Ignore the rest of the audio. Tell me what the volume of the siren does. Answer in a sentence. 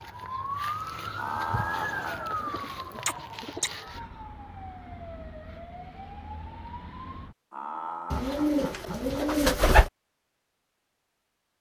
The volume of the siren goes down.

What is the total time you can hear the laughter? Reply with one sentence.
You can hear the laughter for 3 seconds altogether.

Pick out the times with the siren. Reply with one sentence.
You can hear the siren from 0.0 to 7.3 s.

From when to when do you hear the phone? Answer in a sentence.
The phone can't be heard in this clip.